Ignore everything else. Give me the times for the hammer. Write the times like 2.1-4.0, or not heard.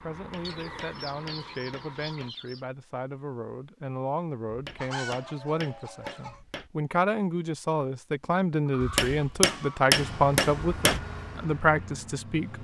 0.1-2.3, 4.5-6.7, 8.8-11.0.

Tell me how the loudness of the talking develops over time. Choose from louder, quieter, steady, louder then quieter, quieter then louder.
louder.